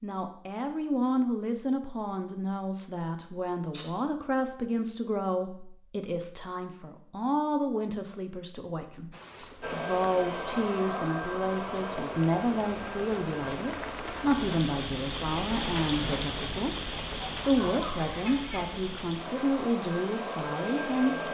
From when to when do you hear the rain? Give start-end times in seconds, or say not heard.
9.1-21.1.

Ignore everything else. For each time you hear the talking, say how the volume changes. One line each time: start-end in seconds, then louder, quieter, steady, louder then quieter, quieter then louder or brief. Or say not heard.
0.0-21.3 steady.